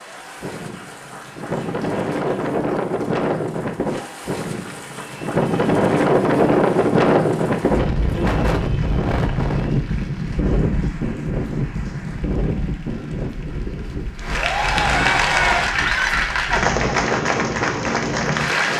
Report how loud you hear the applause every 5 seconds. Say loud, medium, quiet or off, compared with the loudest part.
quiet, quiet, medium, loud.